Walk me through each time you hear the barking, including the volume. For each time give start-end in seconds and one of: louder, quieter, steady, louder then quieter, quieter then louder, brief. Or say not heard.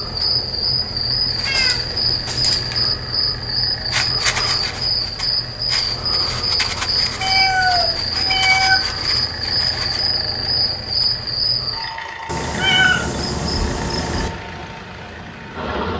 not heard.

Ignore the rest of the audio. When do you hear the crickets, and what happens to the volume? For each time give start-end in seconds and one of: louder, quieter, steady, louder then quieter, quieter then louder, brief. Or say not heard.
0.0-11.9 steady.